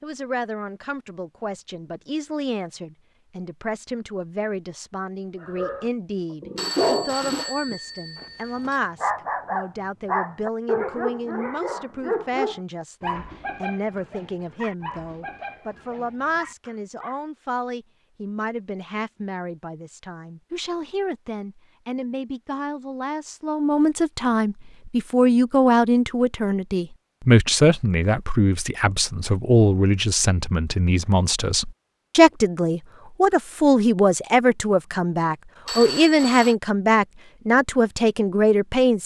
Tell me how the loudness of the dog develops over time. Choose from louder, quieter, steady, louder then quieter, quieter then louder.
quieter.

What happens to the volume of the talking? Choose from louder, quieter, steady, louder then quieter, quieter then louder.
louder.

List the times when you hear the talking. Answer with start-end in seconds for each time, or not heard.
0.0-39.0.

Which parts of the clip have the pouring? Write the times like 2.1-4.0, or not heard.
not heard.